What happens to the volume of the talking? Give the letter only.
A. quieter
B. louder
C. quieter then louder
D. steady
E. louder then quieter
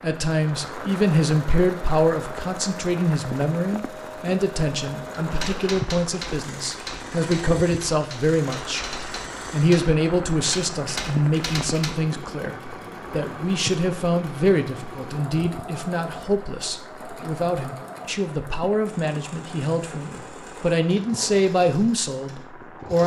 D.